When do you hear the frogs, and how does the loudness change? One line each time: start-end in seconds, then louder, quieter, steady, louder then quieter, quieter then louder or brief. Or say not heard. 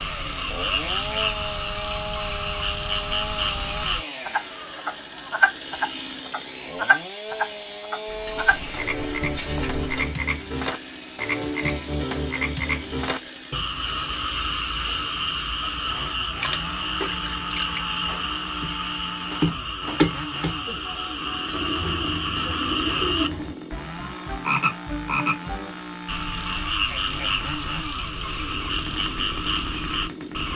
0.0-30.5 steady.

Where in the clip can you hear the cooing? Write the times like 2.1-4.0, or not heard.
8.1-10.1, 21.5-23.6.